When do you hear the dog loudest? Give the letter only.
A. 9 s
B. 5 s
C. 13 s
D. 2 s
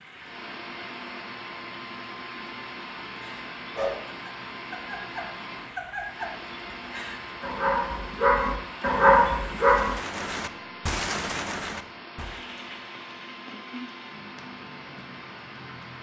A.